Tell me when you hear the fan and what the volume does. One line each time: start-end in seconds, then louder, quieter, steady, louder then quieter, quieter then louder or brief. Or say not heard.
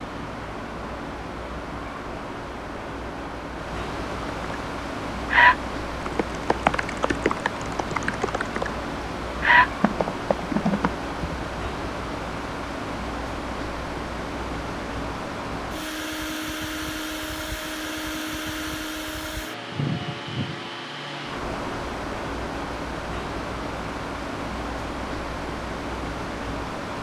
0.0-26.9 steady.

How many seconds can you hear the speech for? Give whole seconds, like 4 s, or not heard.
not heard.